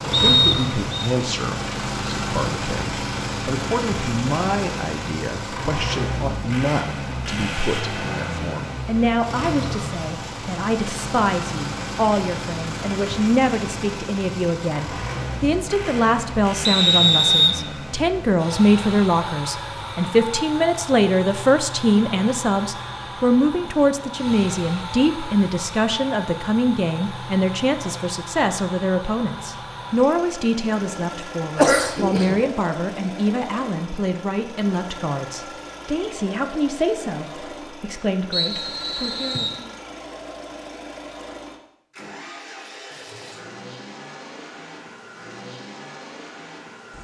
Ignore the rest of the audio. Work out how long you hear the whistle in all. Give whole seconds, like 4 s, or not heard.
3 s.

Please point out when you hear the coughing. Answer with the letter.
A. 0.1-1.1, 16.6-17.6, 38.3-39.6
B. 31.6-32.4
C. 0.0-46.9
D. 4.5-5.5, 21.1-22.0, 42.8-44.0
B.